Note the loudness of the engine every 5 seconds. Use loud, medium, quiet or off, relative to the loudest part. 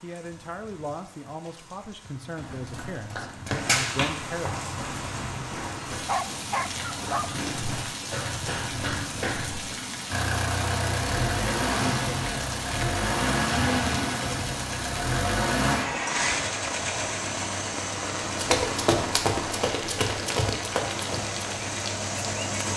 off, off, loud, loud, medium.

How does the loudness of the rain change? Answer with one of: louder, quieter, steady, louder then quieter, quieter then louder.
louder.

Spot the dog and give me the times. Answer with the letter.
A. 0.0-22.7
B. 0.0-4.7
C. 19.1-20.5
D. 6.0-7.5
D.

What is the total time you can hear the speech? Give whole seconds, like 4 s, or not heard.
5 s.